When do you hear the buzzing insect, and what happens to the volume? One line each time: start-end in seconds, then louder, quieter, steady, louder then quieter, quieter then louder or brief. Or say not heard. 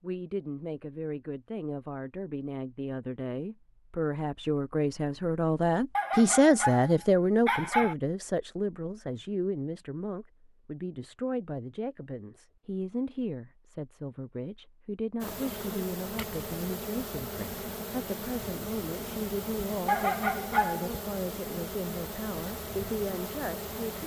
15.2-24.0 steady.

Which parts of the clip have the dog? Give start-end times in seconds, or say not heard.
6.0-8.0, 19.9-21.0.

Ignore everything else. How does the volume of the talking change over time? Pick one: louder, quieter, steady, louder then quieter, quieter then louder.
louder then quieter.